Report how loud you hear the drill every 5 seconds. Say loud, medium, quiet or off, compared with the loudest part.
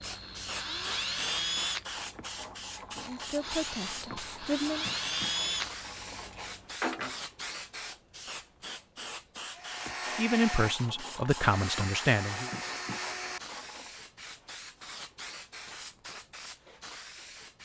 loud, loud, loud, off.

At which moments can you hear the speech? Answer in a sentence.
You can hear the speech from 2.9 to 4.8 s and from 10.2 to 12.5 s.